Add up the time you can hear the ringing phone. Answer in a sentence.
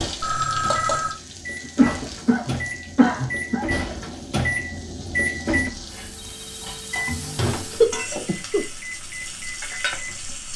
The ringing phone can be heard for 2 seconds in total.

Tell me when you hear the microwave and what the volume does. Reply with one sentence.
The microwave can be heard from 0.0 to 10.4 s, getting louder then quieter.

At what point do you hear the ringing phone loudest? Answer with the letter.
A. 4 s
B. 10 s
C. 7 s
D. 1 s
D.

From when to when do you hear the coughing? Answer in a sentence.
You can hear the coughing from 1.8 to 3.6 s and from 7.7 to 8.7 s.